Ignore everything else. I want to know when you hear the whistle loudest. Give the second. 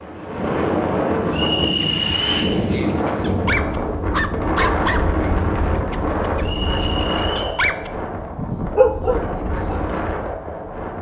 2 s.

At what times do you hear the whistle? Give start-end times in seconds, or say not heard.
1.3-2.5, 6.4-7.5.